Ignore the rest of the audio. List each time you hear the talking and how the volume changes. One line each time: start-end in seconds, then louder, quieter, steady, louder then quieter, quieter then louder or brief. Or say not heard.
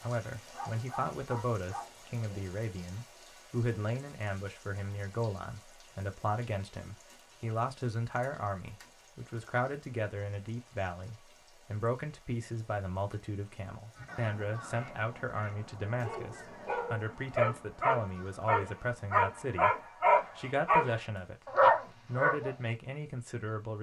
0.0-23.7 steady.